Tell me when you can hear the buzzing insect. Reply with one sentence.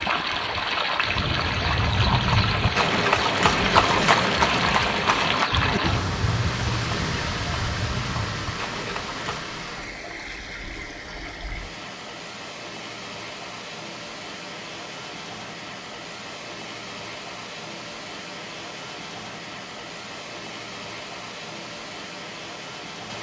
You can't hear the buzzing insect here.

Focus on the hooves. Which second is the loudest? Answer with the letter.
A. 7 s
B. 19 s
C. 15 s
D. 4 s
D.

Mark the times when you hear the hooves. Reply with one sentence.
The hooves can be heard from 1.1 to 9.4 s.